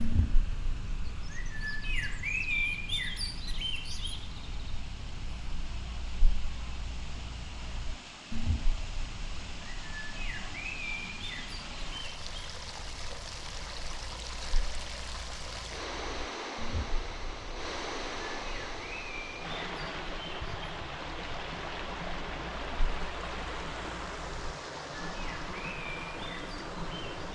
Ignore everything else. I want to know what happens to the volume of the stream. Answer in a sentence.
The volume of the stream goes up.